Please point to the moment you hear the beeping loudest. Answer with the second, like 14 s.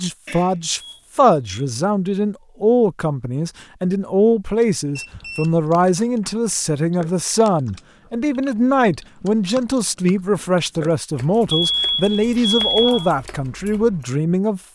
13 s.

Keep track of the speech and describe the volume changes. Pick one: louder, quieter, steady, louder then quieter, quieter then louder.
steady.